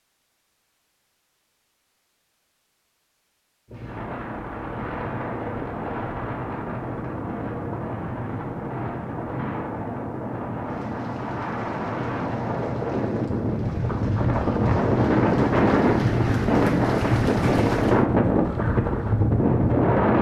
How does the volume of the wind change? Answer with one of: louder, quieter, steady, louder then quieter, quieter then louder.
louder.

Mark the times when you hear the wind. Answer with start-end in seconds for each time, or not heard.
3.6-20.1.